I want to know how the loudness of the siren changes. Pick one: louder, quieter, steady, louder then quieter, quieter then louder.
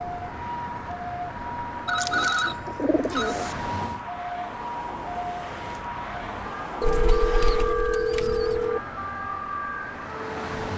steady.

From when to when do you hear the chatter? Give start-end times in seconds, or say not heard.
not heard.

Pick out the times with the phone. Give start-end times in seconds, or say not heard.
1.9-3.4, 6.8-8.8.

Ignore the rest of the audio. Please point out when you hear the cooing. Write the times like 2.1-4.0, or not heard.
1.9-3.5, 6.8-8.7.